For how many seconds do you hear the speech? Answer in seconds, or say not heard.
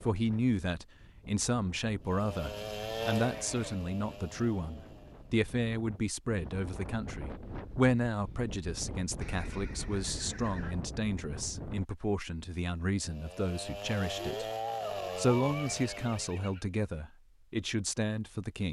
18 s.